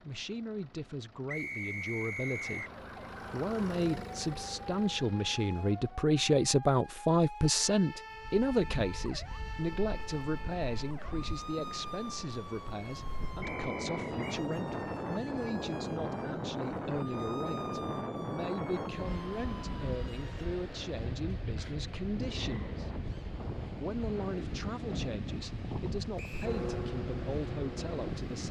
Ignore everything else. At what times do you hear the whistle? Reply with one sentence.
You can hear the whistle from 1.2 to 2.7 s, from 13.4 to 14.4 s and from 26.1 to 26.6 s.